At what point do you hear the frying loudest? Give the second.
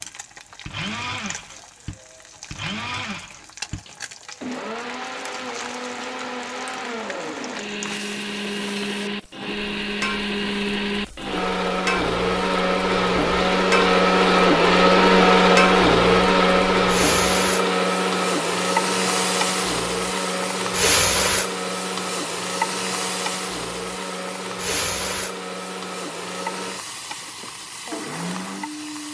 21 s.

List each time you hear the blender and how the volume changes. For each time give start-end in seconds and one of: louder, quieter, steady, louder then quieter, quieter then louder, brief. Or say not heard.
0.0-29.0 louder then quieter.